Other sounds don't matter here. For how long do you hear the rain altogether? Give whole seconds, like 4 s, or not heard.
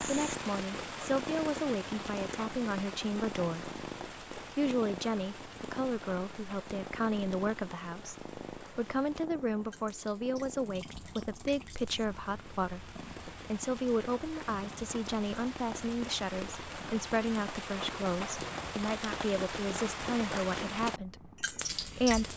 22 s.